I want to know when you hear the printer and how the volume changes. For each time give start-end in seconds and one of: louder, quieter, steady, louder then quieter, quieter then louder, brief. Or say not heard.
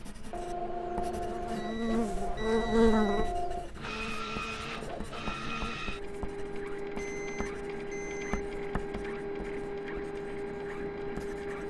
0.0-11.6 steady.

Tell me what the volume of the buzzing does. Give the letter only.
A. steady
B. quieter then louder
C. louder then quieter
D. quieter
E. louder
C.